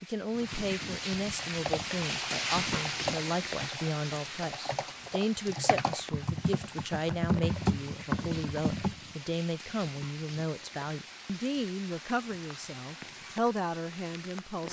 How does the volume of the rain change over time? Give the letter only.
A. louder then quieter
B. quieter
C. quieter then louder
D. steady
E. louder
B.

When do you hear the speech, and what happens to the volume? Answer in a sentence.
You can hear the speech from 0.0 to 14.6 s, at a steady volume.